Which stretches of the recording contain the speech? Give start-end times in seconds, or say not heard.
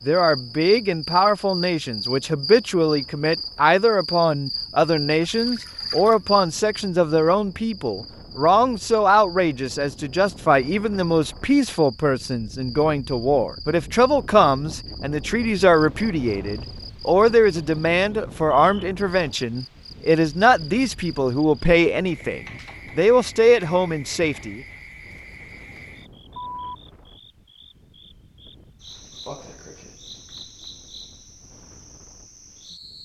0.1-24.6.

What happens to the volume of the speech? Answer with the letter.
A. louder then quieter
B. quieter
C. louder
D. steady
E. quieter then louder
D.